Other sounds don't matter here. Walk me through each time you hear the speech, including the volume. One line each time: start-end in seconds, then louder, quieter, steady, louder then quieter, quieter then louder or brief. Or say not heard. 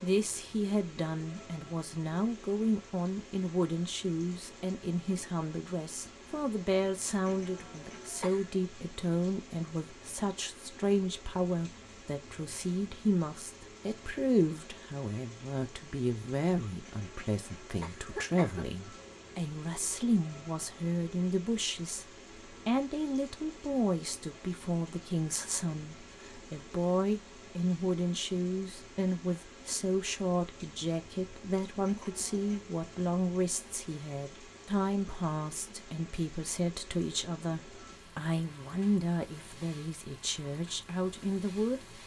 0.0-42.0 steady.